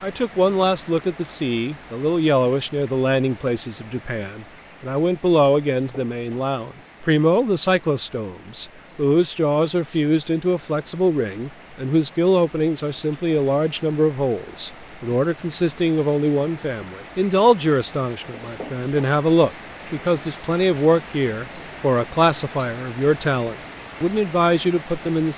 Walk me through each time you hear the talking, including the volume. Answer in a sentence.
The talking can be heard from 0.0 to 25.3 s, at a steady volume.